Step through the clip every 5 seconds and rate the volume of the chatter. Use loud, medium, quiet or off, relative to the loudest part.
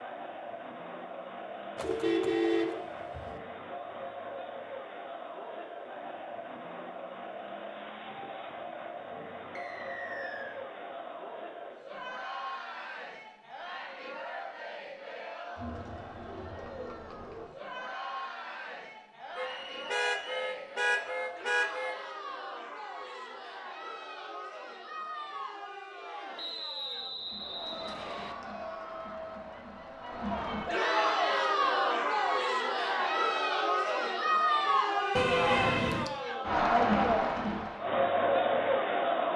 quiet, quiet, quiet, quiet, quiet, quiet, loud, loud.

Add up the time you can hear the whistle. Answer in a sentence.
The whistle can be heard for 4 seconds in total.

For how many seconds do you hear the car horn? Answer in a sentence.
The car horn can be heard for 5 seconds in total.